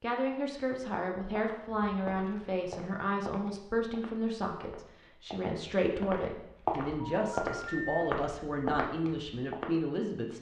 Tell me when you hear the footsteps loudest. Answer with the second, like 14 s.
7 s.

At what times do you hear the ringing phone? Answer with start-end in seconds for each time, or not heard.
7.0-8.1.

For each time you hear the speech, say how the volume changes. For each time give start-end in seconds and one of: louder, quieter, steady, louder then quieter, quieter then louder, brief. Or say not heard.
0.0-10.3 steady.